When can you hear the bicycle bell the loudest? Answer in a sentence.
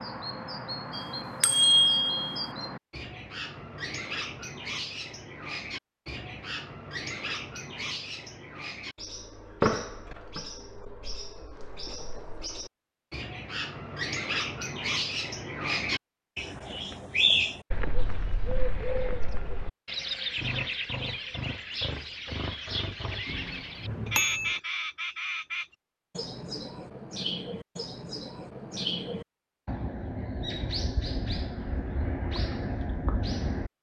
The volume of the bicycle bell peaks at 2 seconds.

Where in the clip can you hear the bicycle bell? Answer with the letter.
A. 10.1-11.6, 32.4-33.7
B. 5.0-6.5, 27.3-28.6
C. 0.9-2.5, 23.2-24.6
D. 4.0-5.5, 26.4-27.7
C.